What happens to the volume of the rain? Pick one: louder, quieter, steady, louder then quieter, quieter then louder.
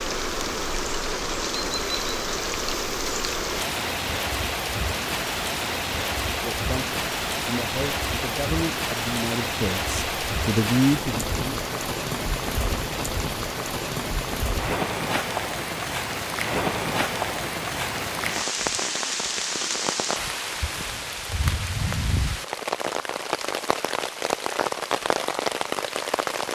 steady.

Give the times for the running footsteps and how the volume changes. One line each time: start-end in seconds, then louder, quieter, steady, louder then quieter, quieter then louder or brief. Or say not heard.
not heard.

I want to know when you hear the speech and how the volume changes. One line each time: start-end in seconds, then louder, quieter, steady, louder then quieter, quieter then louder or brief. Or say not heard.
6.2-11.7 louder.